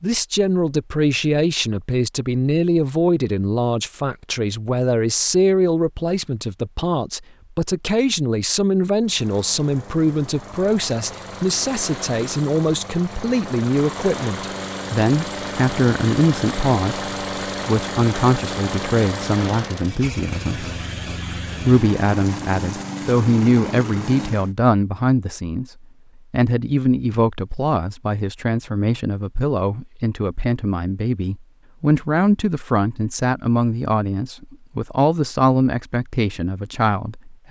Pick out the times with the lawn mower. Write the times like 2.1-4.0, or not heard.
9.1-24.6.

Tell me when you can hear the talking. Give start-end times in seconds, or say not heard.
0.0-20.6, 21.6-37.4.